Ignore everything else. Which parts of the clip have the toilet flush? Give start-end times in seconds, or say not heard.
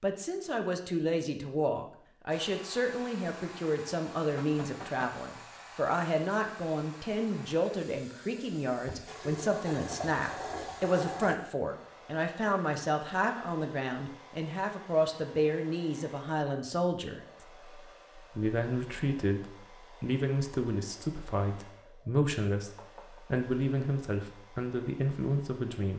9.1-11.4.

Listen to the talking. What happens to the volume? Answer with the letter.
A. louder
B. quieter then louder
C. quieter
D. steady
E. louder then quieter
D.